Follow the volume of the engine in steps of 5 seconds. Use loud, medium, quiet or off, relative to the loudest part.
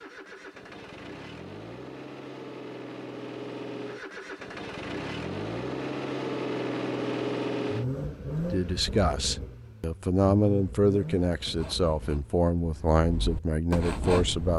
medium, loud, medium.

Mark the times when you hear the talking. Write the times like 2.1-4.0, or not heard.
8.4-14.5.